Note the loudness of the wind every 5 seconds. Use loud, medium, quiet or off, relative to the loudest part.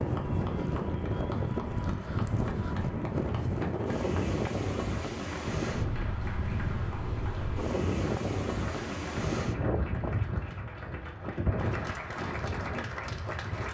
loud, loud, medium.